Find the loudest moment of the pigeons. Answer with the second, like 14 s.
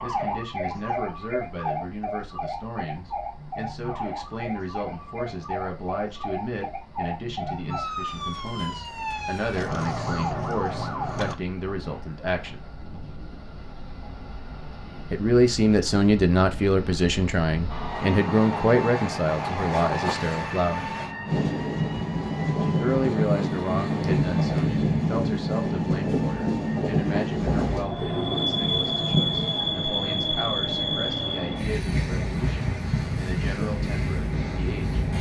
29 s.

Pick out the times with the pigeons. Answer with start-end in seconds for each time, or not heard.
27.9-29.5.